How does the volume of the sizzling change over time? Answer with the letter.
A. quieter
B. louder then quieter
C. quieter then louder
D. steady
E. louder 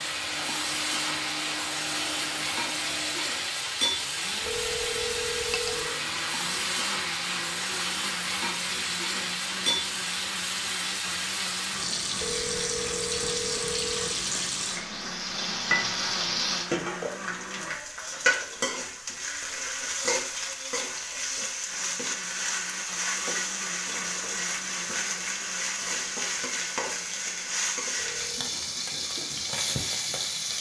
D.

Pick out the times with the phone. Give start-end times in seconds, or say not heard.
4.4-6.0, 12.2-14.2, 27.9-28.5.